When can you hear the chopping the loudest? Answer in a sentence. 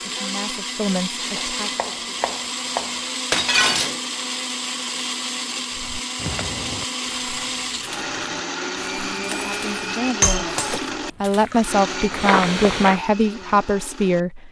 The loudest moment of the chopping is at 3 seconds.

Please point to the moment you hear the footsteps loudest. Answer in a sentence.
The volume of the footsteps peaks at 12 seconds.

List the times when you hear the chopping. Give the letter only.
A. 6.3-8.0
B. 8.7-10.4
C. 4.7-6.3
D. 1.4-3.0
D.